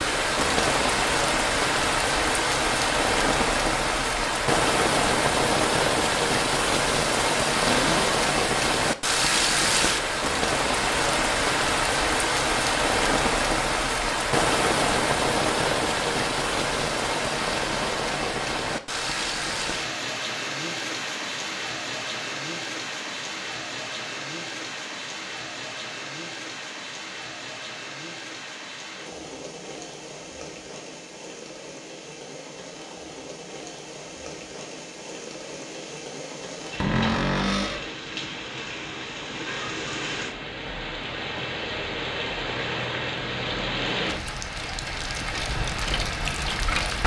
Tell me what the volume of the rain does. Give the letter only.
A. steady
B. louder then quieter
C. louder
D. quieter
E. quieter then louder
E.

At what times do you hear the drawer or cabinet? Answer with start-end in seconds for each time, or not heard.
7.7-8.1, 36.8-37.9.